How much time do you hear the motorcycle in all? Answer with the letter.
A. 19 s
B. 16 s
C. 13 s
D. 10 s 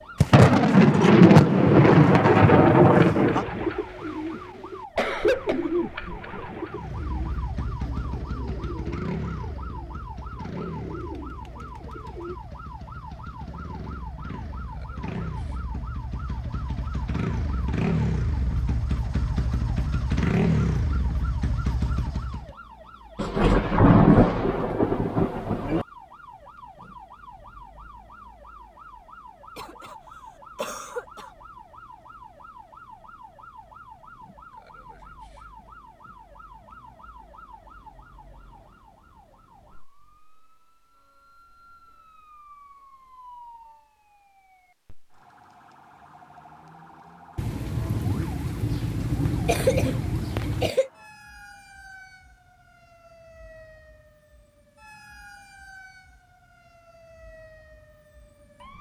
B.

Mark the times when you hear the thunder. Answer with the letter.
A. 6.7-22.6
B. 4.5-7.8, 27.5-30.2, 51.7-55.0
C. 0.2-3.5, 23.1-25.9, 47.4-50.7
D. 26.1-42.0
C.